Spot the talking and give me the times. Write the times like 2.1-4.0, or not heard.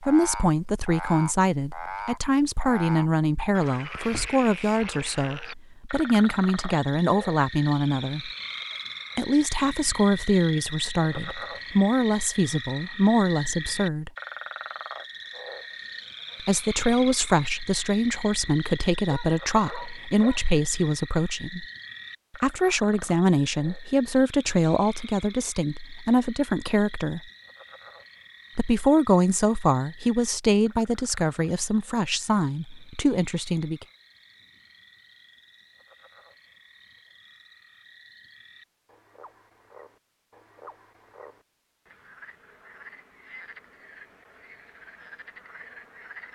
0.0-8.3, 9.2-14.1, 16.4-21.6, 22.4-27.2, 28.6-33.9.